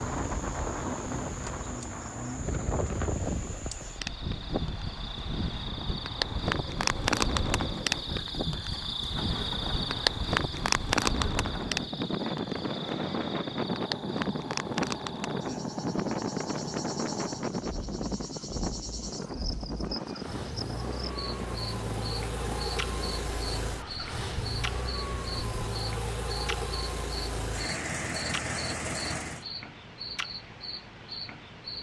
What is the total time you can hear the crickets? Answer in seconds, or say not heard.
32 s.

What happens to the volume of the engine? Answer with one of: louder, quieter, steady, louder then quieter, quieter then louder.
louder.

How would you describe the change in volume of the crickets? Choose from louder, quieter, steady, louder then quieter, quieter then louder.
louder then quieter.